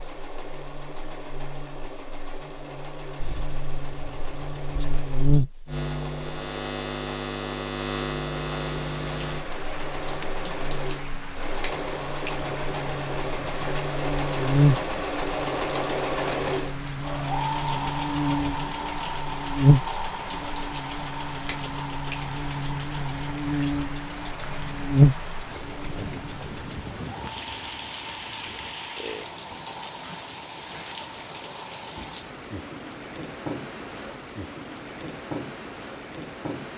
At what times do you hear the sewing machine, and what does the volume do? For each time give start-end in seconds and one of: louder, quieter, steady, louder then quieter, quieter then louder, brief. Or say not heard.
0.0-32.2 louder then quieter.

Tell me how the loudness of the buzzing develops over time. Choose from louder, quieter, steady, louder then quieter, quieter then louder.
louder.